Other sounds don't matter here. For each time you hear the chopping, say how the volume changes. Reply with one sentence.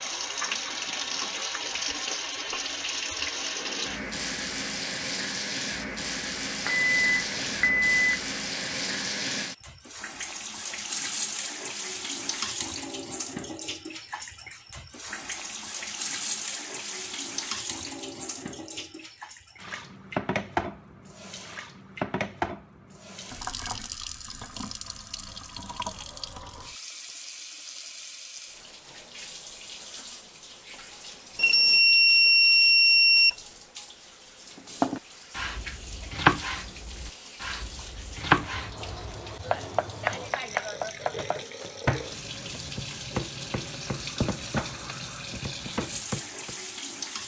The chopping can be heard from 34.5 to 46.5 s, getting quieter.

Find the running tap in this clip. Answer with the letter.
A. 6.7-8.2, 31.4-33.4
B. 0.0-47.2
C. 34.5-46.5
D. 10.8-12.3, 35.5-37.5
B.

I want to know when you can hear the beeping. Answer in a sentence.
The beeping can be heard from 6.7 to 8.2 s and from 31.4 to 33.4 s.